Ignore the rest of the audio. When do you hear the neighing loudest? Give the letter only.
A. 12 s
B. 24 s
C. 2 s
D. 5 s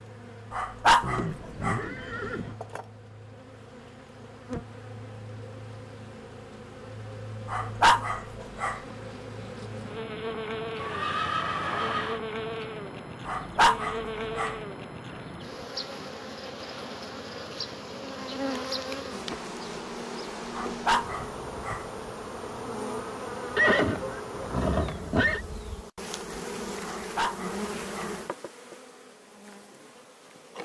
B.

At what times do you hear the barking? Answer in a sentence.
You can hear the barking from 0.5 to 1.9 s, from 7.5 to 8.8 s, from 13.2 to 14.6 s, from 20.5 to 21.9 s and from 26.9 to 28.1 s.